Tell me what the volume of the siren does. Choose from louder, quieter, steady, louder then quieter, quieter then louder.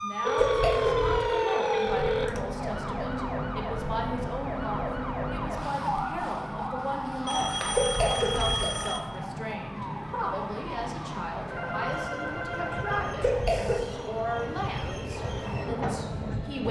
quieter.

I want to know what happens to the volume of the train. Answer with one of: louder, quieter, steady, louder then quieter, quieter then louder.
louder.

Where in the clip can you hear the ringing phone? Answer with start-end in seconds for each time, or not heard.
0.2-2.5, 7.2-9.1, 11.4-13.0.